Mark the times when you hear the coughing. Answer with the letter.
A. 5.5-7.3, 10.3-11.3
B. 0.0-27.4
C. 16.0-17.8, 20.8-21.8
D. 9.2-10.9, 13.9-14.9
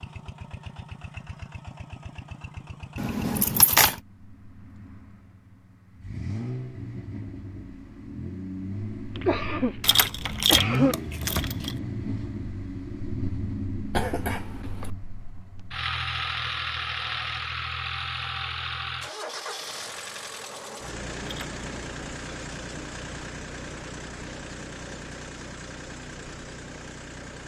D.